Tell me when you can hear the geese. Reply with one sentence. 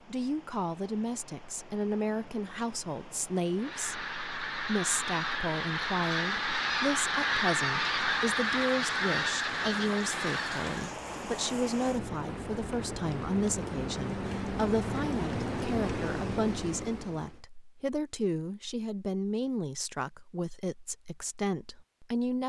The geese can be heard from 3.5 to 10.9 s.